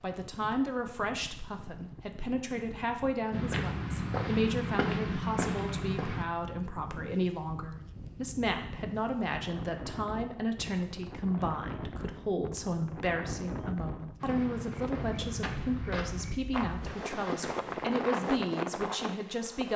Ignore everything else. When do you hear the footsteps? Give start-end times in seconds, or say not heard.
3.3-6.2, 14.2-19.2.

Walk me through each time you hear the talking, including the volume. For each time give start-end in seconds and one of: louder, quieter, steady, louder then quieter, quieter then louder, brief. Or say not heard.
0.0-19.7 steady.